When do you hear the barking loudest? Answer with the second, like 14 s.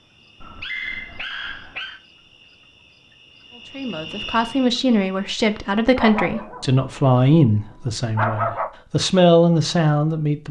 8 s.